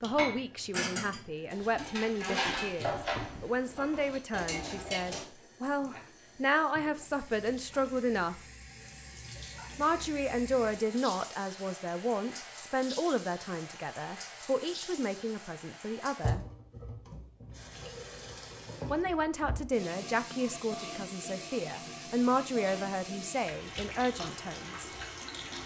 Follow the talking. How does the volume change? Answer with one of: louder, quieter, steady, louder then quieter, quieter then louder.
steady.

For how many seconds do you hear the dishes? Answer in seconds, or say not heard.
5 s.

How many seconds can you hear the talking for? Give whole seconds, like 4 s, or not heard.
21 s.